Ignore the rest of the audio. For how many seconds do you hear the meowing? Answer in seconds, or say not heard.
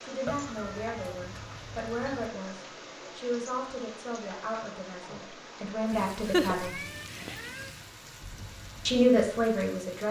4 s.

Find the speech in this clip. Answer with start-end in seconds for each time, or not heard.
0.0-6.8, 8.8-10.0.